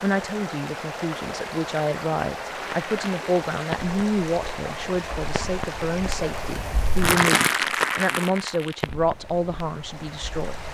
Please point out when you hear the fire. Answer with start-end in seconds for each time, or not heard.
2.5-10.6.